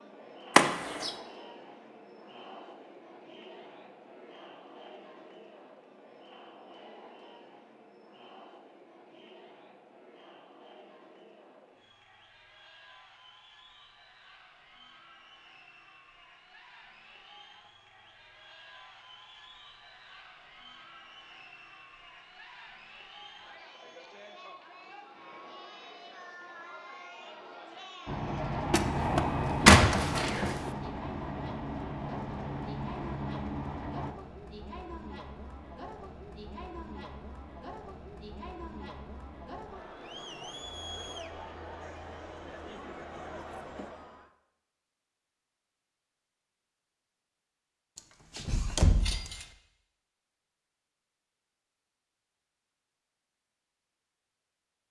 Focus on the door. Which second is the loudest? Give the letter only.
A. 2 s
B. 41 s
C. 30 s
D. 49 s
C.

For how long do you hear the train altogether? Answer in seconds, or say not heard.
6 s.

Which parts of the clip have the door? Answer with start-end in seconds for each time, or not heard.
0.6-1.1, 28.7-30.6, 48.0-49.5.